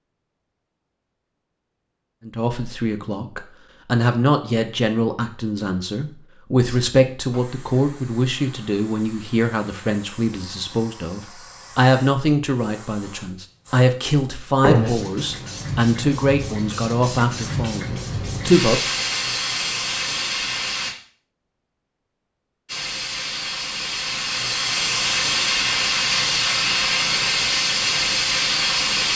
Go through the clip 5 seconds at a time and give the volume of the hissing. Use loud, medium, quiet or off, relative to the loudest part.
off, quiet, medium, medium, medium, loud.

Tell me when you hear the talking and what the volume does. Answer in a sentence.
You can hear the talking from 2.2 to 18.8 s, at a steady volume.